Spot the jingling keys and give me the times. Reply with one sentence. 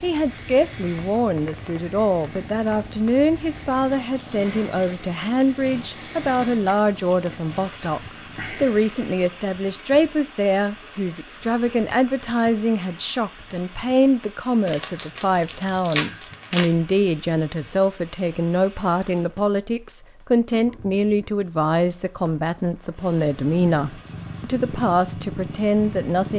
The jingling keys can't be heard in this clip.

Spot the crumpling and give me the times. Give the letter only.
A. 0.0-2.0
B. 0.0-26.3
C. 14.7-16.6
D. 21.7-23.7
C.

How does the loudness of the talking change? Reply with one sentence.
The loudness of the talking stays about the same.